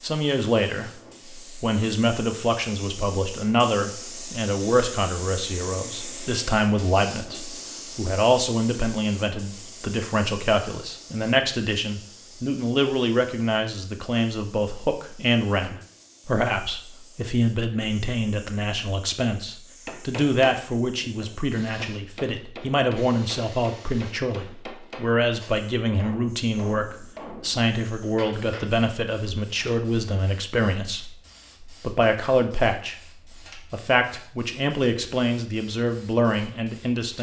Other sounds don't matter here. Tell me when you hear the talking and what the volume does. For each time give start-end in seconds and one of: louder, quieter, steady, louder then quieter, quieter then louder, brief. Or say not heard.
0.0-37.1 steady.